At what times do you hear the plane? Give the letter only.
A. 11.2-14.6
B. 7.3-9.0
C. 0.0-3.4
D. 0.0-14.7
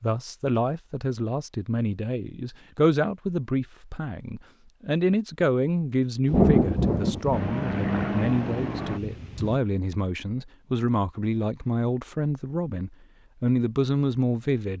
B.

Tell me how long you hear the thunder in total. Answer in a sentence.
You can hear the thunder for 3 seconds altogether.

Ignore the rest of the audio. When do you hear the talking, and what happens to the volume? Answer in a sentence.
The talking can be heard from 0.0 to 14.7 s, at a steady volume.